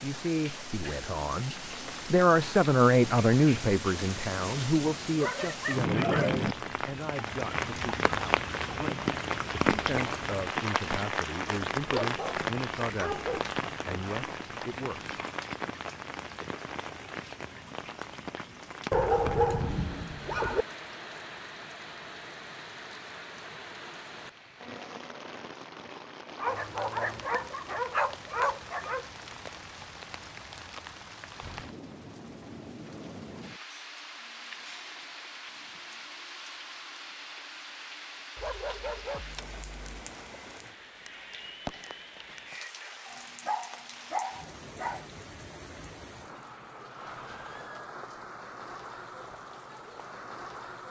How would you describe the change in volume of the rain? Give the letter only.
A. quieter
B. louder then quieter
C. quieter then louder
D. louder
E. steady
A.